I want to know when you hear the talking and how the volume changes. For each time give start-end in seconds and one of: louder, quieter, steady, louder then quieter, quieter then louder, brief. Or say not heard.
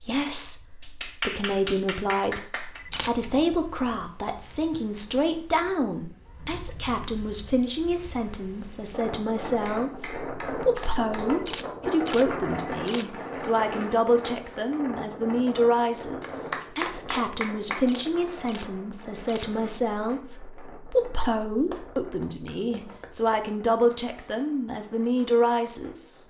0.0-26.2 steady.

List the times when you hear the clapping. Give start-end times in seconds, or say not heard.
0.8-3.0, 9.4-11.4, 16.2-17.8, 21.6-23.5.